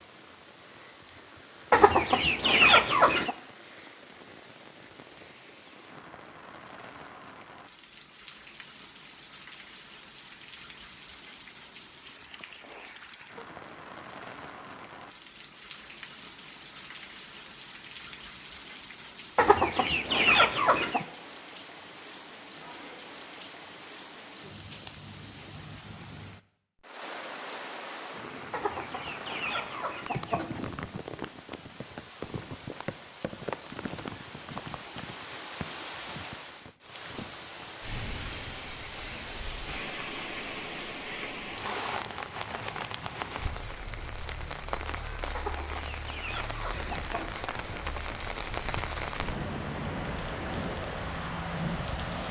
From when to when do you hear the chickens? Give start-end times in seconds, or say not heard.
1.7-3.4, 19.4-21.1, 28.5-30.6, 45.4-47.4.